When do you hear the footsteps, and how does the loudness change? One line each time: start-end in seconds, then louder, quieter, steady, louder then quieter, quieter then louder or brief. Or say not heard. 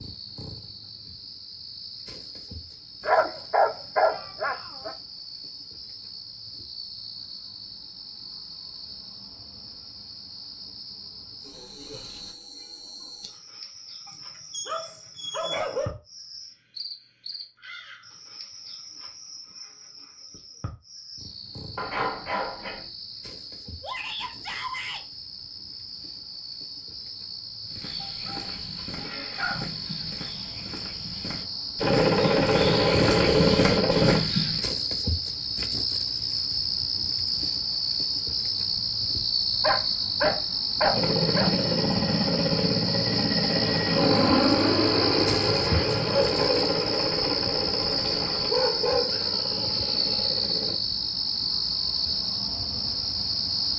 27.6-34.7 louder.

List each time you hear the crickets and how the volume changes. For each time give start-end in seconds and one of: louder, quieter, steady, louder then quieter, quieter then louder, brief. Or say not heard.
0.0-53.7 louder.